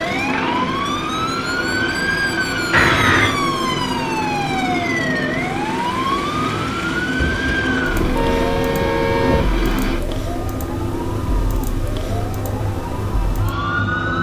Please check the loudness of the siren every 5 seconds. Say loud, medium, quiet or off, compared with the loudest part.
loud, loud, medium.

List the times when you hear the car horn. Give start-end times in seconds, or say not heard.
2.7-3.4, 7.2-9.5.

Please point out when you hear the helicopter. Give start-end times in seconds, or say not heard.
0.0-14.1.